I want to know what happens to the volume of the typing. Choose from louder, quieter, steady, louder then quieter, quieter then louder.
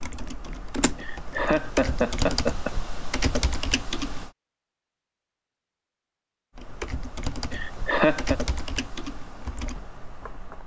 louder then quieter.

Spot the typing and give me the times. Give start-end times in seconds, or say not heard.
0.0-4.3, 6.5-10.6.